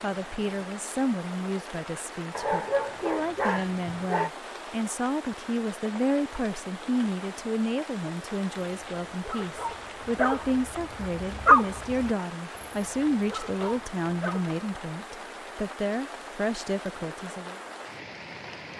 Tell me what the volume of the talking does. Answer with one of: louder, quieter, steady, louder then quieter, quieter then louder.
steady.